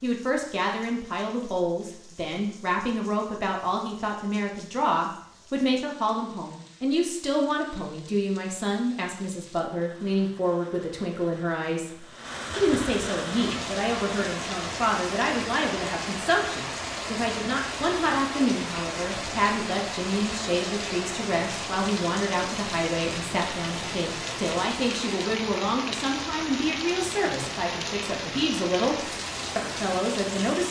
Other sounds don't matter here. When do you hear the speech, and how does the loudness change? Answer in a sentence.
The speech can be heard from 0.0 to 28.9 s, at a steady volume; and briefly from 29.6 to 30.6 s.